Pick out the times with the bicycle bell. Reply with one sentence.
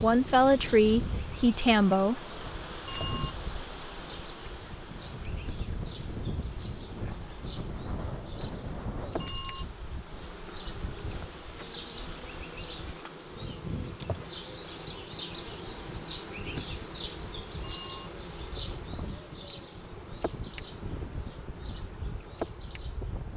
The bicycle bell can be heard from 2.9 to 3.3 s, from 9.2 to 9.7 s and from 17.6 to 18.1 s.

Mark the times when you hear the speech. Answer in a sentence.
You can hear the speech from 0.0 to 2.2 s.